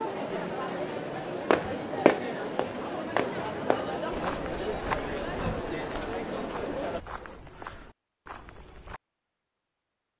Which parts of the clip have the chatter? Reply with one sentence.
The chatter can be heard from 0.0 to 7.0 s.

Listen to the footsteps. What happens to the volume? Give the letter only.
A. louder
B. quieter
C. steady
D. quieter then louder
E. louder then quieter
B.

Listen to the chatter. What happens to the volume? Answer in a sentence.
The volume of the chatter stays about the same.